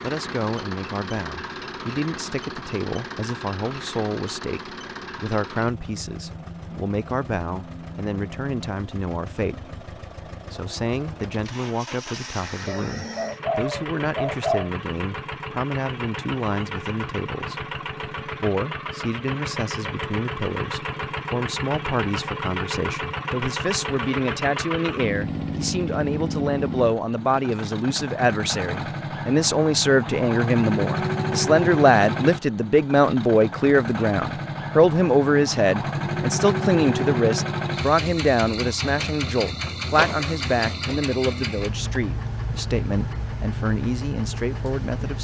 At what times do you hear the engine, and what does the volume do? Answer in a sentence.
The engine can be heard from 0.0 to 45.1 s, getting louder.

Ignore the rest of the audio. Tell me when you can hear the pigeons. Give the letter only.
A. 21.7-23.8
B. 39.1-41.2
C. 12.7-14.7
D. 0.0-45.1
C.